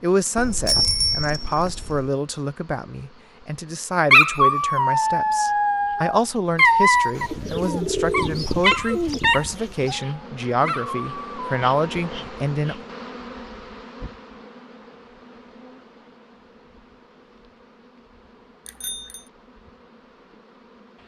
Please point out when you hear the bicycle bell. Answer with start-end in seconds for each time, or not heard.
0.3-2.1, 18.6-19.2.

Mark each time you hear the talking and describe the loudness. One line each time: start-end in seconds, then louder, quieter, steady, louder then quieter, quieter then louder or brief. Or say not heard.
0.0-12.8 steady.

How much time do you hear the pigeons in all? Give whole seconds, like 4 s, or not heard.
3 s.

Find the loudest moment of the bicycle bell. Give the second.
1 s.